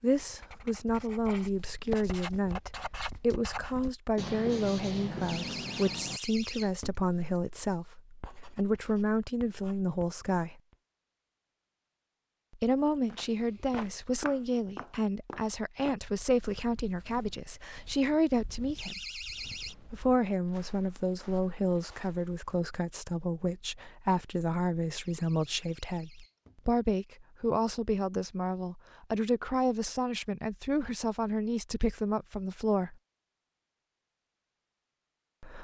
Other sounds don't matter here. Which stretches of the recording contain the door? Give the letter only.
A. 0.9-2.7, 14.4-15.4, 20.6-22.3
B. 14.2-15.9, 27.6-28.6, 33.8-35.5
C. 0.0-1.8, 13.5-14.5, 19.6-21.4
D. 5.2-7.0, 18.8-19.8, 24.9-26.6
D.